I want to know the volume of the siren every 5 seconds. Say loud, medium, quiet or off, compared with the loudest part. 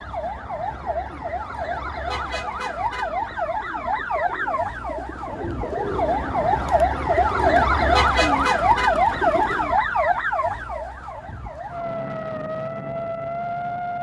medium, loud, medium.